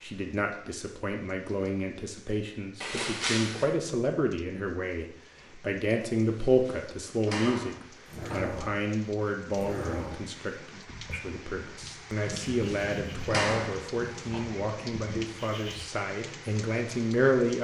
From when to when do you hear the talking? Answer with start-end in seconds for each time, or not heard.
0.0-17.5.